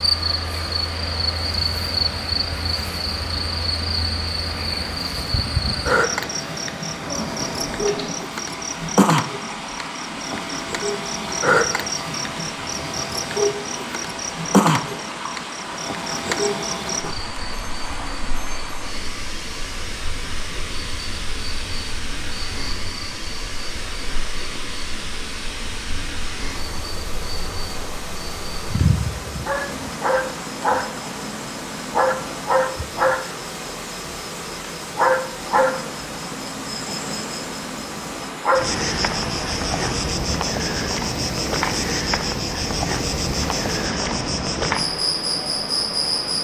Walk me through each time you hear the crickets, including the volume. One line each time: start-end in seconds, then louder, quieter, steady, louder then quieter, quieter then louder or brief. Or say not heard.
0.0-46.3 quieter then louder.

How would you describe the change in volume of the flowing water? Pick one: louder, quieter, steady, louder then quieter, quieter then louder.
steady.